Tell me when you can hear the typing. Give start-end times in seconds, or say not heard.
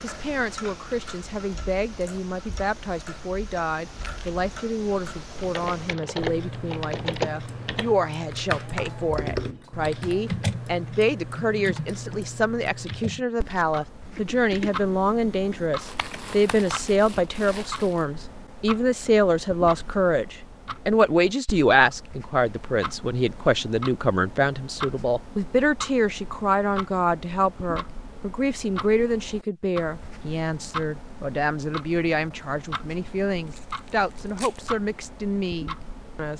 5.3-16.9.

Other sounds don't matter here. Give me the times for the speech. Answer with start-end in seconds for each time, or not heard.
0.0-36.3.